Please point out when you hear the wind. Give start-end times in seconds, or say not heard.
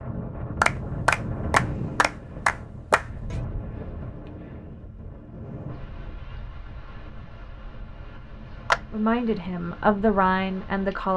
0.0-11.1.